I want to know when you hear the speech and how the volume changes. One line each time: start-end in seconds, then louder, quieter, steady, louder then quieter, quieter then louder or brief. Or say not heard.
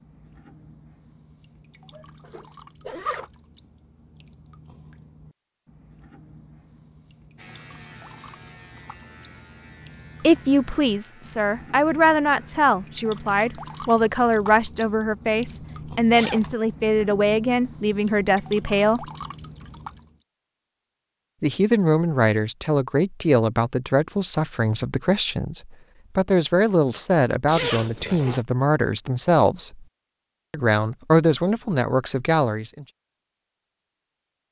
10.2-19.1 steady
21.4-29.9 steady
30.5-32.9 brief.